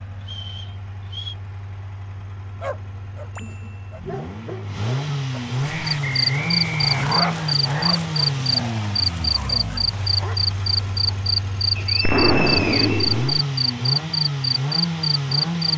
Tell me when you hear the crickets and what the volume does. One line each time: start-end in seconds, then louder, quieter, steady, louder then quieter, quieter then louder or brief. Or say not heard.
5.5-15.7 steady.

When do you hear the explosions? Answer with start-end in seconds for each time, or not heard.
12.0-13.4.